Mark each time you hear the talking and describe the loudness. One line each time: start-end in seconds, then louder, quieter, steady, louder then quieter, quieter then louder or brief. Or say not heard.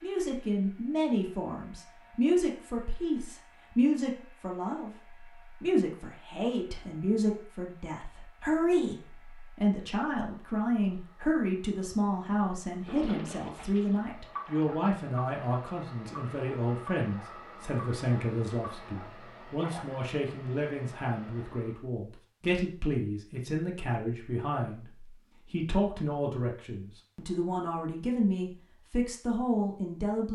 0.0-30.3 steady.